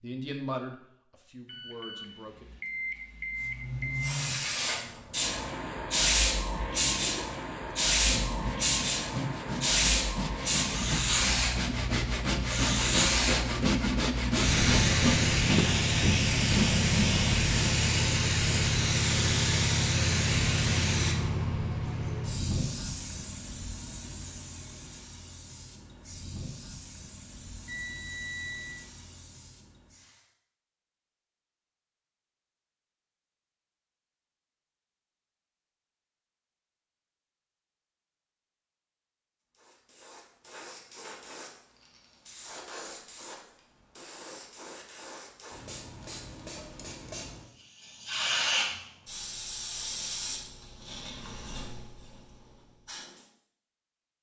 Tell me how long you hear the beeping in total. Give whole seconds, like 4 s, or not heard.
4 s.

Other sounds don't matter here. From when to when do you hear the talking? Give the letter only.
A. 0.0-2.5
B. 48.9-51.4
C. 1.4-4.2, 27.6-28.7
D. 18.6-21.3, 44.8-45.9
A.